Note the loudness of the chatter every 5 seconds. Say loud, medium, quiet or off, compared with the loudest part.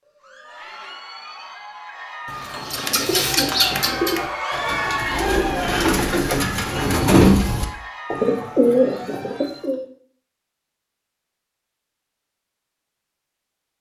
loud, loud, off.